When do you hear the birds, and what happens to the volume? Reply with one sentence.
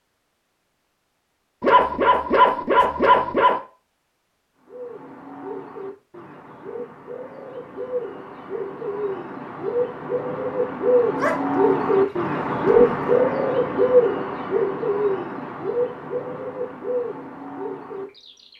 You can hear the birds from 4.7 to 18.5 s, getting louder then quieter.